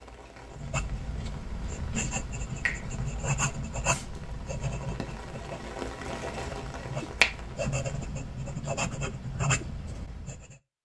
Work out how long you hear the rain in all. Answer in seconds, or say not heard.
8 s.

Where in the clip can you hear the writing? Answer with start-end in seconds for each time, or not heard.
0.5-10.6.